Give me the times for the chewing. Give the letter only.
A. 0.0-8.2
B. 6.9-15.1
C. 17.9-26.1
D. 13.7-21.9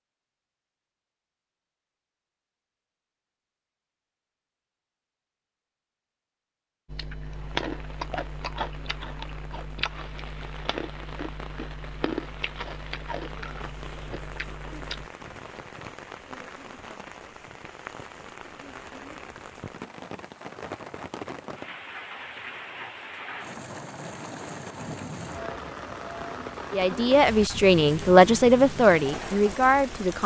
B.